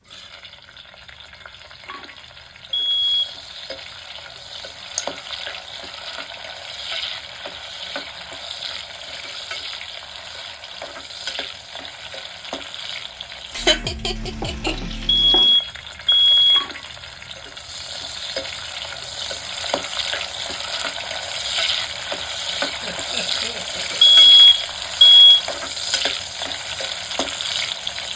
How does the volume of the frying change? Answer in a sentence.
The loudness of the frying goes up.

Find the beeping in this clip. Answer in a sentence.
You can hear the beeping from 2.7 to 3.3 s, from 15.1 to 16.6 s and from 24.1 to 25.4 s.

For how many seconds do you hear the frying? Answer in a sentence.
You can hear the frying for 28 seconds altogether.